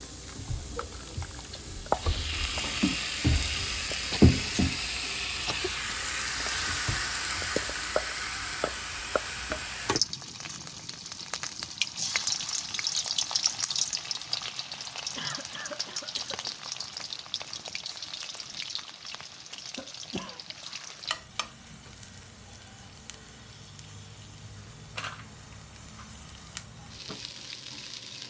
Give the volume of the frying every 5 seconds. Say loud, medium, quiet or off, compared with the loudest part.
loud, loud, loud, medium, quiet, quiet.